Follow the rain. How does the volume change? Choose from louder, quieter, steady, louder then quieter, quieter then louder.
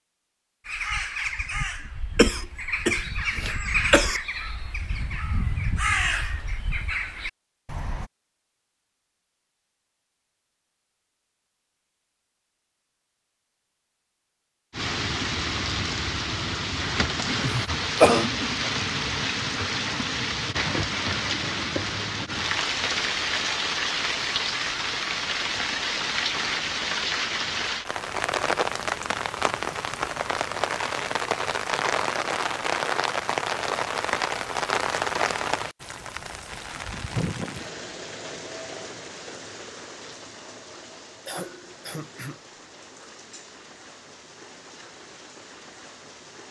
quieter.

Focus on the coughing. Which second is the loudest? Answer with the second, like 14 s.
18 s.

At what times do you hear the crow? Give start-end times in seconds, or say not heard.
0.7-8.1.